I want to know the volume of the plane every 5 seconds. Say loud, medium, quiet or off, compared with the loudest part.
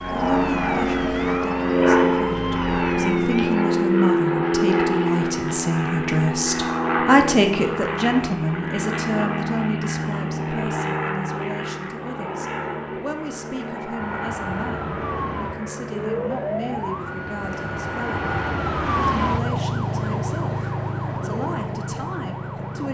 loud, medium, medium, quiet, quiet.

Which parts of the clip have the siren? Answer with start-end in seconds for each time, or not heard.
0.0-3.6, 13.9-22.8.